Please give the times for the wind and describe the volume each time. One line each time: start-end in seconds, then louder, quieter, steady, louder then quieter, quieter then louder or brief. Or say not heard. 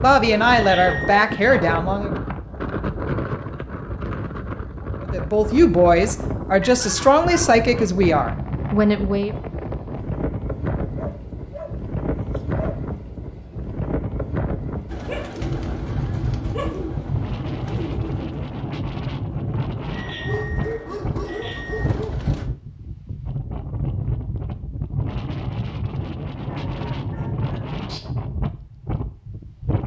0.0-29.8 steady.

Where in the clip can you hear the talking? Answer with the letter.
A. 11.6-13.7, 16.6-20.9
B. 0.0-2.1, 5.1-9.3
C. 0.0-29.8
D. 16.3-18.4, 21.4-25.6
B.